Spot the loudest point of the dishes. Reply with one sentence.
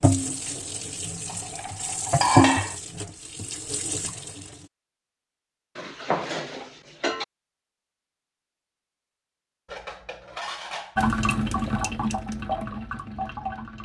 The volume of the dishes peaks at 2 seconds.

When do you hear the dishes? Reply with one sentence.
The dishes can be heard from 1.2 to 2.8 s, from 5.8 to 7.2 s and from 9.7 to 11.0 s.